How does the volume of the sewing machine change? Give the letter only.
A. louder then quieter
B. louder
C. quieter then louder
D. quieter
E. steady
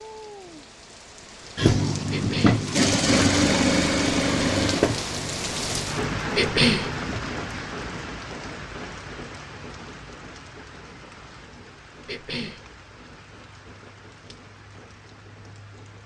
D.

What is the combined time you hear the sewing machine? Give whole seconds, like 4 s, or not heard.
6 s.